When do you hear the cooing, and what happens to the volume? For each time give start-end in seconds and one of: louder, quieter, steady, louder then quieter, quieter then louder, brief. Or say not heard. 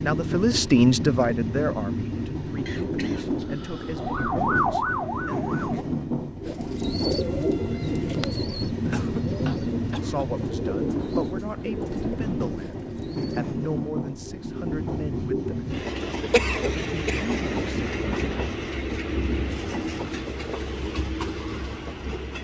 6.4-13.4 quieter.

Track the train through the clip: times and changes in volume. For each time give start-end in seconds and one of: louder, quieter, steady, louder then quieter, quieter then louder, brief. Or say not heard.
0.0-22.3 steady.